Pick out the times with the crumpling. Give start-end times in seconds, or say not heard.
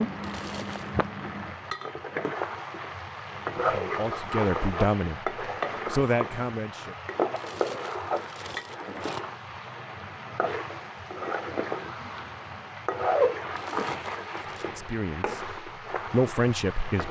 0.2-1.1, 7.3-9.2, 13.6-14.7.